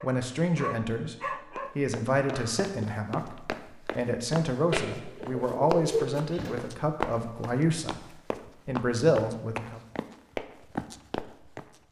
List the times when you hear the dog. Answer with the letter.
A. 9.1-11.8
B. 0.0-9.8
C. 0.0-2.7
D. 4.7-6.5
C.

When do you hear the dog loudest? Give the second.
1 s.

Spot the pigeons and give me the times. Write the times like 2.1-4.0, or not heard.
4.7-6.5.